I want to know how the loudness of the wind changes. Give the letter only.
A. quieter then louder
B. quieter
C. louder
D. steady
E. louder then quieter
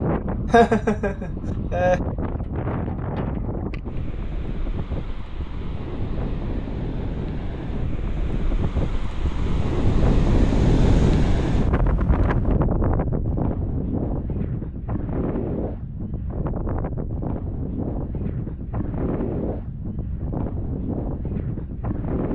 E.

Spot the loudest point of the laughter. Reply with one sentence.
The loudest moment of the laughter is at 1 second.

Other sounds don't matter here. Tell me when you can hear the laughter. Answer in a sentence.
The laughter can be heard from 0.5 to 2.0 s.